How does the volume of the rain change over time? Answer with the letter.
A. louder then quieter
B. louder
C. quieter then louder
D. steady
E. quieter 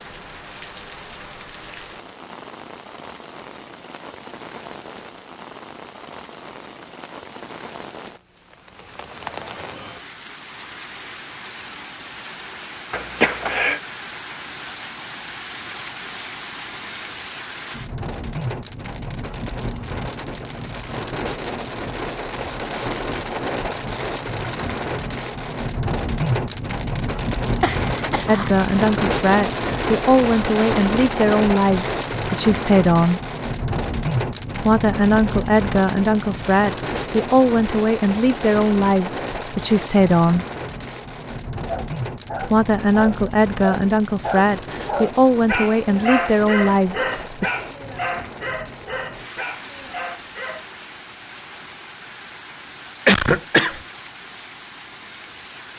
A.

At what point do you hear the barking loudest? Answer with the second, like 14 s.
46 s.